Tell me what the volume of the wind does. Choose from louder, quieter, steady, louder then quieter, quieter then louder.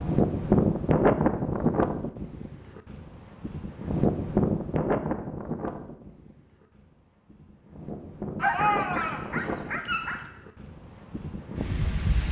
quieter.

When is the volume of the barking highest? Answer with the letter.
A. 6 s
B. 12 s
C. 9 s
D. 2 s
C.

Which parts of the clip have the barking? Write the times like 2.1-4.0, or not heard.
8.3-10.2.